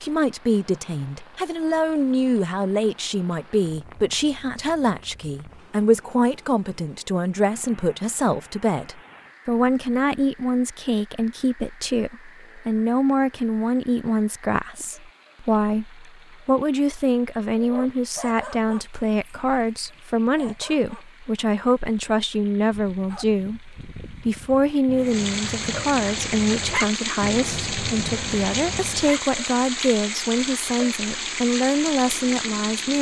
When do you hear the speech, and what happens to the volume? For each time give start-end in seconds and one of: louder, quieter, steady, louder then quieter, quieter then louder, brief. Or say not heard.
0.0-32.9 steady.